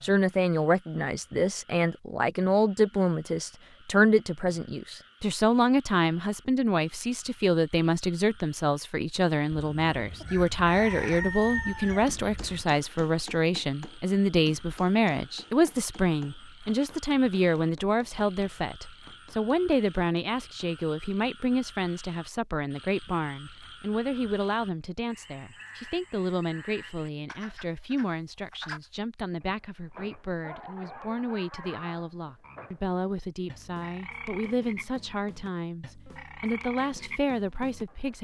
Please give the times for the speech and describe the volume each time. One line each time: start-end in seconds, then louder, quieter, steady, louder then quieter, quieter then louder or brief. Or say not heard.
0.0-38.1 quieter.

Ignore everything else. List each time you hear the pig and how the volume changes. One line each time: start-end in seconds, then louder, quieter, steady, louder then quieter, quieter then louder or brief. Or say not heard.
not heard.